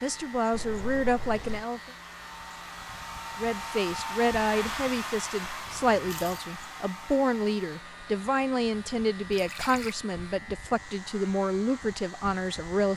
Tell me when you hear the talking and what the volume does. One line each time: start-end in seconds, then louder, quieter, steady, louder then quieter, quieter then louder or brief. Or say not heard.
0.0-1.9 brief
3.4-12.9 steady.